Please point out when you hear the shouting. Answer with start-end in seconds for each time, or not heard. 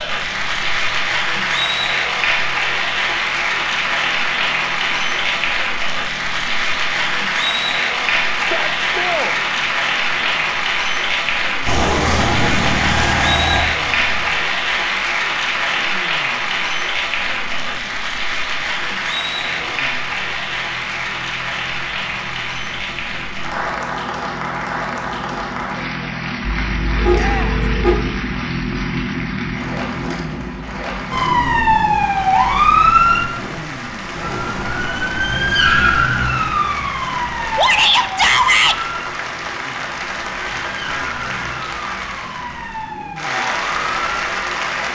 8.3-9.3, 27.1-27.6, 37.5-38.8.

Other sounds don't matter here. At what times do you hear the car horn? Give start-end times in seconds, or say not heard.
26.4-28.1.